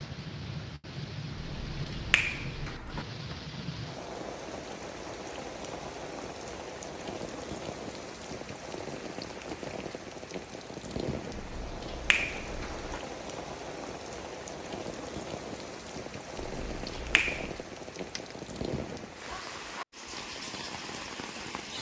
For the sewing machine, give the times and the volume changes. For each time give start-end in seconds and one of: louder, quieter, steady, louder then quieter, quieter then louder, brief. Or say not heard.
not heard.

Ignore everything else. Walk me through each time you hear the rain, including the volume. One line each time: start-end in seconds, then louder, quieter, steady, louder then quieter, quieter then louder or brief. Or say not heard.
0.0-21.7 steady.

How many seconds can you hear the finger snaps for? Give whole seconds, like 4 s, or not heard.
5 s.